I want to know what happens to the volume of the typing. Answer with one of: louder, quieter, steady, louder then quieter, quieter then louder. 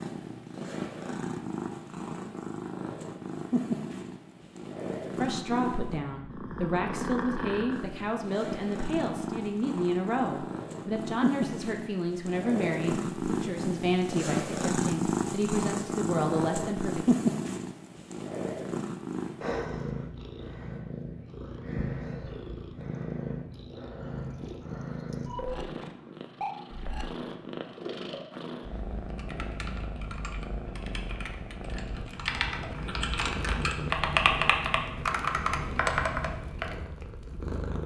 louder.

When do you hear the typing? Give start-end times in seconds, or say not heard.
29.1-36.8.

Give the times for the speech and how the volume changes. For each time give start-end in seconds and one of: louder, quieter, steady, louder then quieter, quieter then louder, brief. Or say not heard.
5.2-17.1 steady.